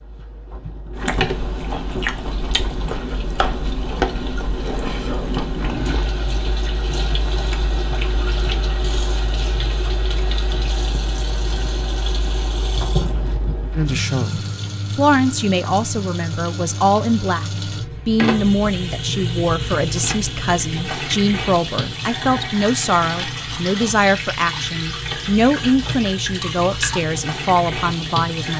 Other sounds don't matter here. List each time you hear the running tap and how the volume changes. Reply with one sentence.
You can hear the running tap from 0.0 to 28.5 s, getting louder.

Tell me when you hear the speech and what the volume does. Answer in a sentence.
You can hear the speech from 13.8 to 28.5 s, at a steady volume.